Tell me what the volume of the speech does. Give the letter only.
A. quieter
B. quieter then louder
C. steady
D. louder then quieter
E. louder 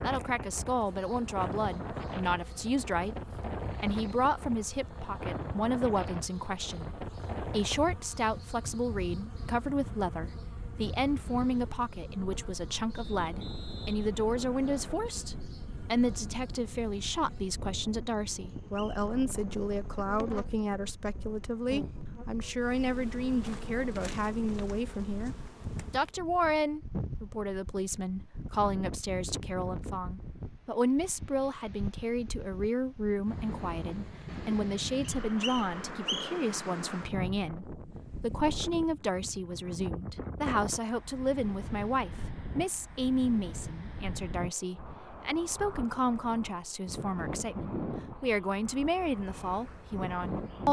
C.